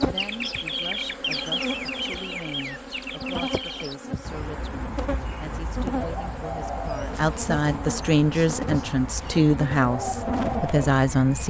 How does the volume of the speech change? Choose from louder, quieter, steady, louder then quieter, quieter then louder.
louder.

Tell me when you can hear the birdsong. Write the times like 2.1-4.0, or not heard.
0.0-11.4.